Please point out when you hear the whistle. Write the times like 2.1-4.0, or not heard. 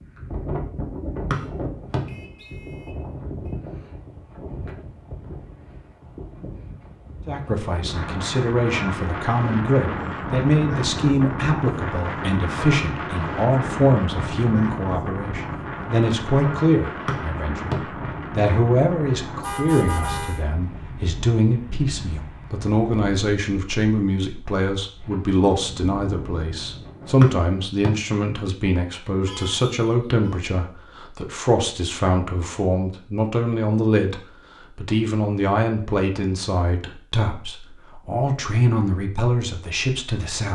1.3-2.5, 17.1-17.8, 27.2-27.9.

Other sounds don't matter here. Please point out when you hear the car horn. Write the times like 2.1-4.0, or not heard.
1.3-3.5, 19.4-20.4, 29.2-30.4.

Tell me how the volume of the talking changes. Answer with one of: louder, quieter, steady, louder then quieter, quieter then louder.
steady.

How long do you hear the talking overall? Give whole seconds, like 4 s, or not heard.
33 s.